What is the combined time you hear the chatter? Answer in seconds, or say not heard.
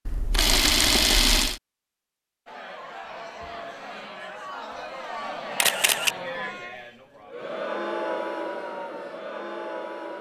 8 s.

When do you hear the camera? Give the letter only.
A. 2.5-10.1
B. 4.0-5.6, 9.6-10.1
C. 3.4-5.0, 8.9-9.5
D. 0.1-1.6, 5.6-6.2
D.